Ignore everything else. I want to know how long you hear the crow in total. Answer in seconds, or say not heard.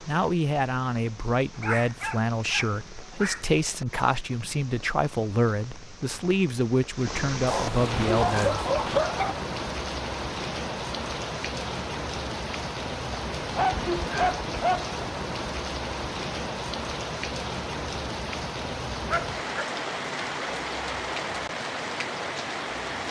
not heard.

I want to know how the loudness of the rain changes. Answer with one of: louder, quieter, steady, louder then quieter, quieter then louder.
louder.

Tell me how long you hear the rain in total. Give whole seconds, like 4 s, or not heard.
23 s.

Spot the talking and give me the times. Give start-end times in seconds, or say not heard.
0.1-8.7.